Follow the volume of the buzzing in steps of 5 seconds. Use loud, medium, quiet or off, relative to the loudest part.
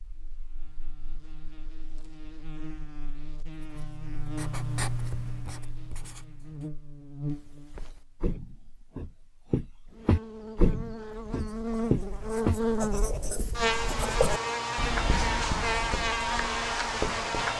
quiet, quiet, loud, loud.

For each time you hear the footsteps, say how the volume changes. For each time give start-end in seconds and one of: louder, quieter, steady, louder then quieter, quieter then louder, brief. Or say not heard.
7.2-12.6 louder.